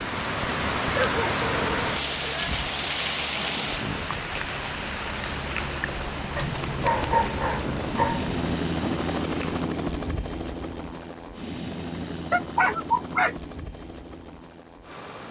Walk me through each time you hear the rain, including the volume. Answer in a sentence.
The rain can be heard from 0.0 to 9.7 s, getting quieter.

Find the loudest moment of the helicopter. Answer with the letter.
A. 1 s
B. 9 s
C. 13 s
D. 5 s
B.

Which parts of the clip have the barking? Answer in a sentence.
You can hear the barking from 0.9 to 2.7 s, from 6.3 to 8.4 s and from 12.3 to 13.3 s.